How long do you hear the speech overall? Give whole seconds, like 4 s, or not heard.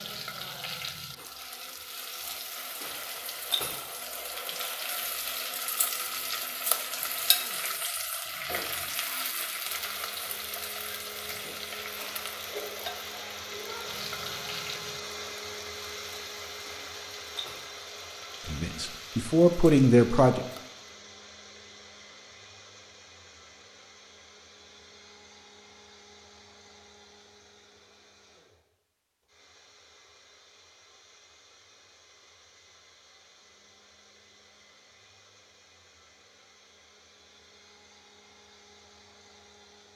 2 s.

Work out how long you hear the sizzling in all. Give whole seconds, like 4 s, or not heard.
21 s.